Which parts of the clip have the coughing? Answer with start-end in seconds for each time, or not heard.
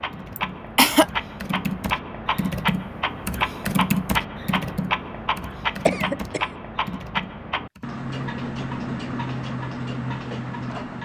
0.3-1.1, 5.8-6.5.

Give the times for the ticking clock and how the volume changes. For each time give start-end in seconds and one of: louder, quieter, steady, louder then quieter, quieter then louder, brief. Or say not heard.
0.0-10.9 steady.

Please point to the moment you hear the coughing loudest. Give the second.
1 s.